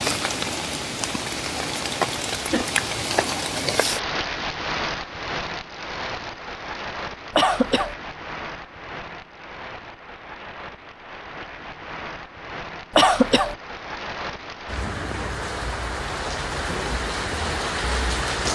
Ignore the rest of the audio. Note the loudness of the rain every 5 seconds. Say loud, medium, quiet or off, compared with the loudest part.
loud, medium, medium, loud.